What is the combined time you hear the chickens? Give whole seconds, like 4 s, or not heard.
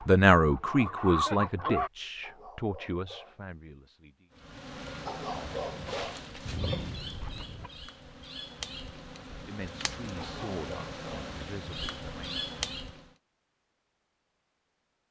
4 s.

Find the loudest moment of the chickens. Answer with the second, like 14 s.
1 s.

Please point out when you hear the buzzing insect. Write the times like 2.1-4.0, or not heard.
4.3-13.1.